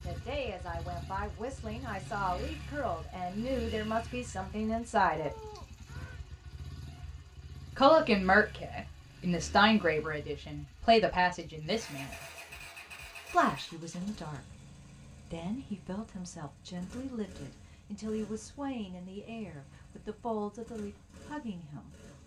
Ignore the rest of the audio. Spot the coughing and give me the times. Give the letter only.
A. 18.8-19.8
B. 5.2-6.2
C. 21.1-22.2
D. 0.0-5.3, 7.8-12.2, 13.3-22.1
B.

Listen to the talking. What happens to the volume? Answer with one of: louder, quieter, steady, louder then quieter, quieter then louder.
louder then quieter.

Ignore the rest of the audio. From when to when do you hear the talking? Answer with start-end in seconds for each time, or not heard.
0.0-5.3, 7.8-12.2, 13.3-22.1.